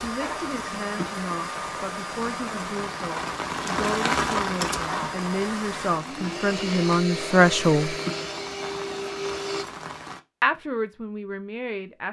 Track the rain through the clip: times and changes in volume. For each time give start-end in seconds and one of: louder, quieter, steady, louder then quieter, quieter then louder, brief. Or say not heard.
0.0-10.2 louder then quieter.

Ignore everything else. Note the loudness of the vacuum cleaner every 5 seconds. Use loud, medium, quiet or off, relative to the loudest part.
loud, loud, off.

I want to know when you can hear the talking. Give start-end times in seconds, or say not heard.
0.0-8.0, 10.4-12.0.